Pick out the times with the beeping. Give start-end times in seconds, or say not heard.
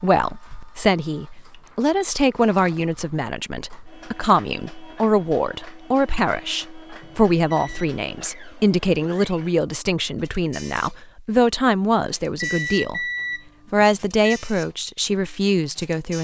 1.5-2.1, 7.0-8.0, 12.4-14.4.